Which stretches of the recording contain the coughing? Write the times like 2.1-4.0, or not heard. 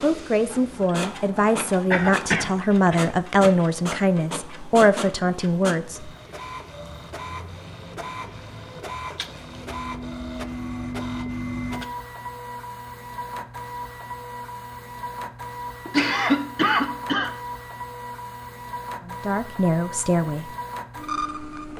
1.9-3.5, 15.8-17.3.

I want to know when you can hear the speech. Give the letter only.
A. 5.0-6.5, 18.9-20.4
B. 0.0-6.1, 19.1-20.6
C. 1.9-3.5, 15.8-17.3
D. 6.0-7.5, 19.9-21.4
B.